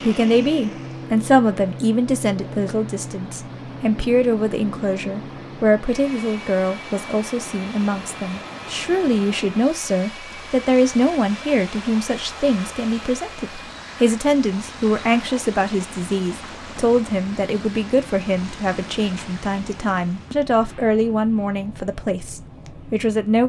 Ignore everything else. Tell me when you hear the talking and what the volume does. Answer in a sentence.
The talking can be heard from 0.0 to 23.4 s, at a steady volume.